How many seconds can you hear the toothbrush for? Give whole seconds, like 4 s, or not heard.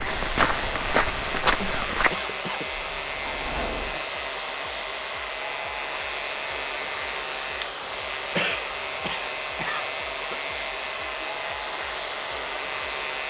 not heard.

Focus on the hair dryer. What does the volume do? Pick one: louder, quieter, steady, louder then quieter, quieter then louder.
steady.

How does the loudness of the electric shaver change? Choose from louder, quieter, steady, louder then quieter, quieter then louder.
steady.